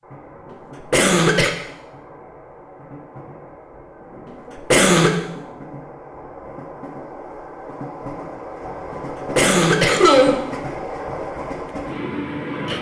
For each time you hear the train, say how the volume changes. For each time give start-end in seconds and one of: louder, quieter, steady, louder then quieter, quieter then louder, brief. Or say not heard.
0.0-12.7 louder.